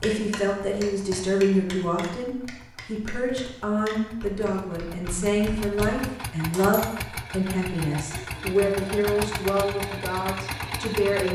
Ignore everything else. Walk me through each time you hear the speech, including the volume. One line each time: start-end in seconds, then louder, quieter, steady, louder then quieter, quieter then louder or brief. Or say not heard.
0.0-11.3 steady.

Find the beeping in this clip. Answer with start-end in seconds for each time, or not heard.
not heard.